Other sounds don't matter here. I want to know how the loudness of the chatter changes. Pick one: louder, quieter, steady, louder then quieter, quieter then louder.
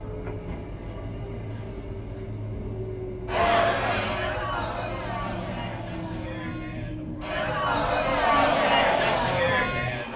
quieter then louder.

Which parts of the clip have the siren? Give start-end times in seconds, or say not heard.
not heard.